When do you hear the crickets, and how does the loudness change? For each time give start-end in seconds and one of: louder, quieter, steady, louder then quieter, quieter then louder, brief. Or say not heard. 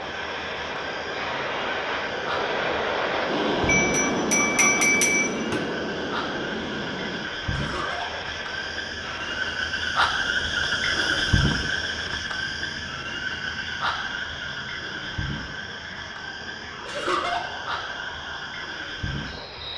0.0-19.7 louder then quieter.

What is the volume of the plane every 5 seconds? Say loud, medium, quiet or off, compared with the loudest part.
loud, medium, quiet, quiet.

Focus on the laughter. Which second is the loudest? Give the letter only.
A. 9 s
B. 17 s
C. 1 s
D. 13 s
B.